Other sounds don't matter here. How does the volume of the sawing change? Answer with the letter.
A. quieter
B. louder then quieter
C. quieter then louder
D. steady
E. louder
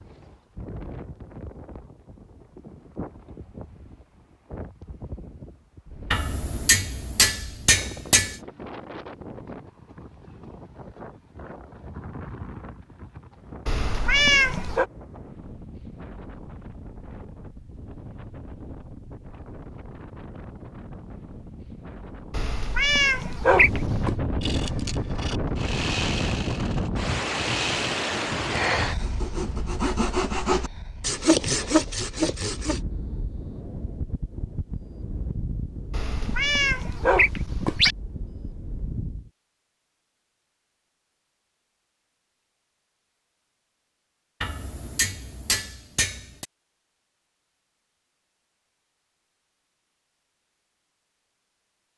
E.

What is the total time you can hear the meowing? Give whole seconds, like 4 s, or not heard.
5 s.